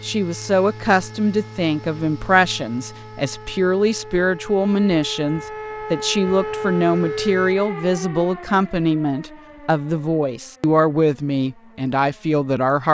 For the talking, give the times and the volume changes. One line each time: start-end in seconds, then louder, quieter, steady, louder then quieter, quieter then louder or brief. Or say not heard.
0.0-12.8 steady.